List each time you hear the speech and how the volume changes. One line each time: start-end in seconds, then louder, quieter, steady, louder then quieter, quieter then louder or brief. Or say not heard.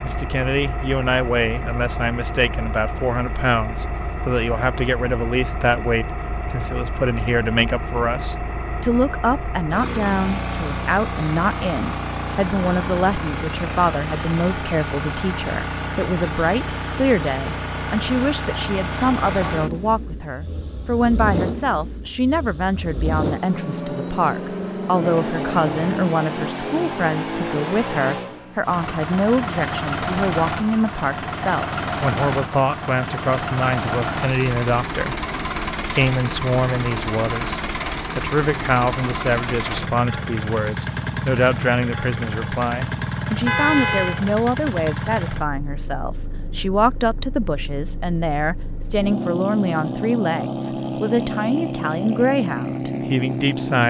0.0-53.8 steady.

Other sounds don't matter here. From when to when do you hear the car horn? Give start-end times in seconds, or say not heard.
43.5-44.2.